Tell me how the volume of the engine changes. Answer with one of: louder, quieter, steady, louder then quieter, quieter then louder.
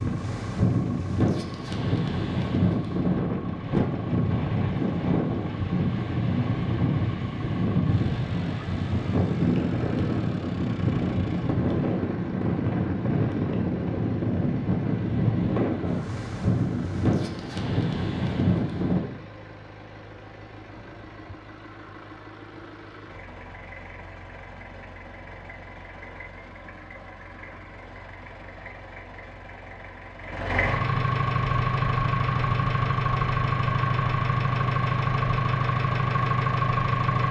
louder.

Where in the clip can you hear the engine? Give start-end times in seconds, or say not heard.
0.0-37.2.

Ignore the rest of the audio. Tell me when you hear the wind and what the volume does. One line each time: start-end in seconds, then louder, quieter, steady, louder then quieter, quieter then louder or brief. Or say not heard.
0.0-19.1 steady.